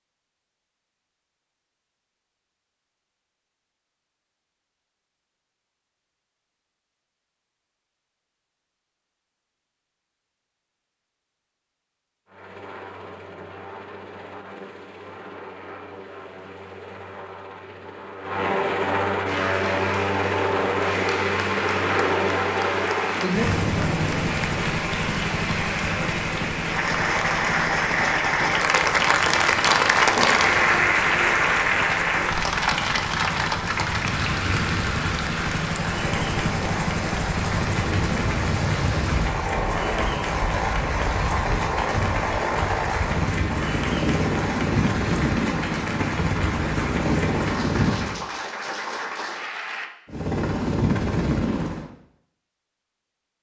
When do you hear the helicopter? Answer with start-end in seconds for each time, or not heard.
12.2-48.2, 50.0-51.9.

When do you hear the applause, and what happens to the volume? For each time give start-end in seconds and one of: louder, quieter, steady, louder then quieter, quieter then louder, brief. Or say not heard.
19.2-49.9 louder then quieter.